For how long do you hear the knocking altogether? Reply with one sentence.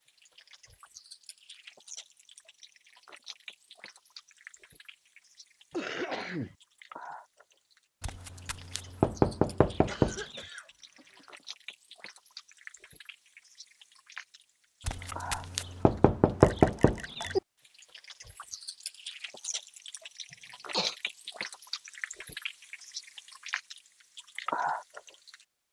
You can hear the knocking for 5 seconds altogether.